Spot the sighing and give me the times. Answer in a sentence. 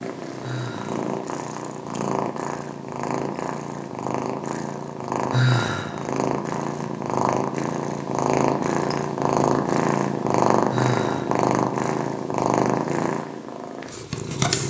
The sighing can be heard from 0.4 to 1.1 s, from 5.3 to 6.1 s and from 10.7 to 11.4 s.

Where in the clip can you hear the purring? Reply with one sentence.
You can hear the purring from 0.0 to 14.6 s.